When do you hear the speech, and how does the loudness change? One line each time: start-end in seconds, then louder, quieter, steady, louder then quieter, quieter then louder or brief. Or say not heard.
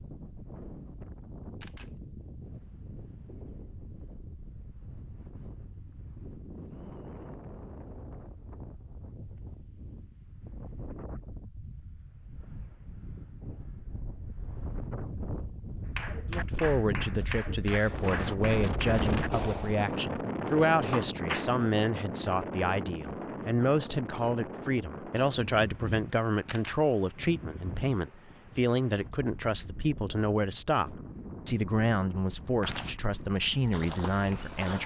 16.3-34.8 steady.